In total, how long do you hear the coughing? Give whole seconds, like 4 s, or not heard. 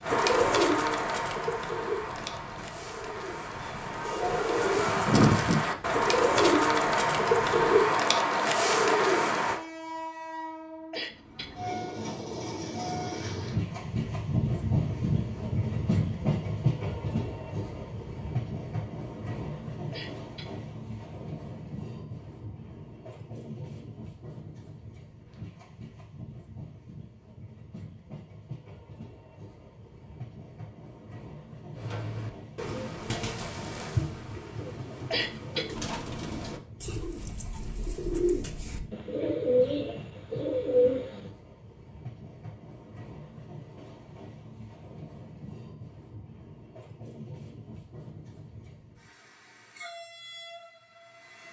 2 s.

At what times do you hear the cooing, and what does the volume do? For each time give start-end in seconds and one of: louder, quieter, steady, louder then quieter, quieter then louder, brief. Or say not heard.
0.0-9.6 quieter then louder
31.8-41.3 louder.